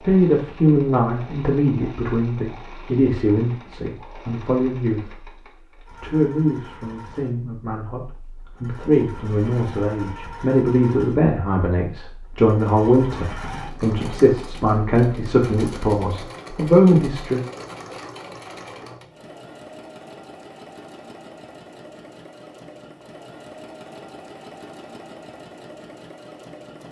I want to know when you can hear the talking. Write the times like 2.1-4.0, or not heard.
0.0-17.4.